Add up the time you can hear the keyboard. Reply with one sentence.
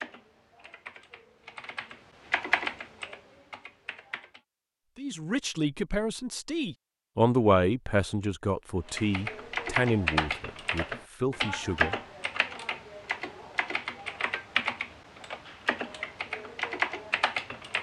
The keyboard can be heard for 13 seconds in total.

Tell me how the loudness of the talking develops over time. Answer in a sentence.
The loudness of the talking goes up, then down.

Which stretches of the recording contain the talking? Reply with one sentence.
The talking can be heard from 5.0 to 11.9 s.